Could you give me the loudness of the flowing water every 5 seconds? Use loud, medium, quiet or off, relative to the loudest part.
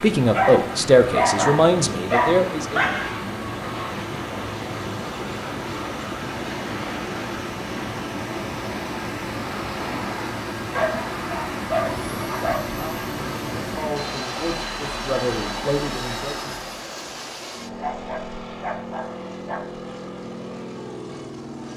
loud, loud, loud, loud, off.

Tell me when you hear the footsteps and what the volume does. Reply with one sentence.
The footsteps can't be heard in this clip.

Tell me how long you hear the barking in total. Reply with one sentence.
You can hear the barking for 7 seconds altogether.